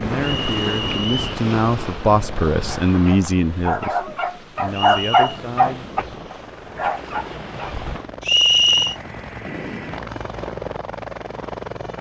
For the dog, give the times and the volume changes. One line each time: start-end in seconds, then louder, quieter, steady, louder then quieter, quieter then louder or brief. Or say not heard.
2.6-7.9 louder then quieter.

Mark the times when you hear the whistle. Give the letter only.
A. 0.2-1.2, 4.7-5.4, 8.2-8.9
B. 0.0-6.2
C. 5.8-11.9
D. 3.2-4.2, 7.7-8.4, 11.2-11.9
A.